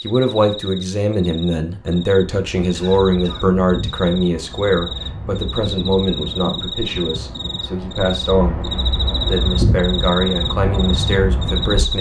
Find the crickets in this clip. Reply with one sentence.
You can hear the crickets from 0.0 to 11.9 s.